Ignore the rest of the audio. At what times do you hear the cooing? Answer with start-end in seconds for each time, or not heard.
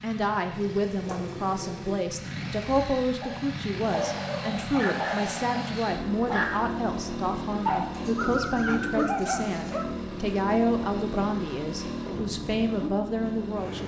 0.5-2.1, 8.0-9.8.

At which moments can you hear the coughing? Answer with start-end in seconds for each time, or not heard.
not heard.